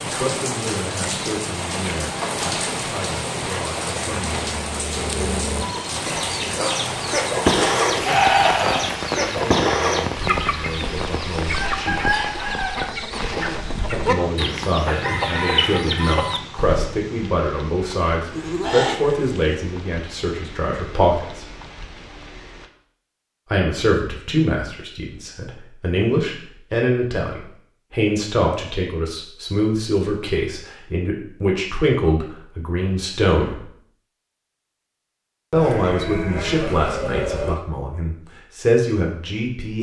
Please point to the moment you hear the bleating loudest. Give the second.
8 s.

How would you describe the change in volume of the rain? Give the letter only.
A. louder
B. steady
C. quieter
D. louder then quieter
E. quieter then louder
C.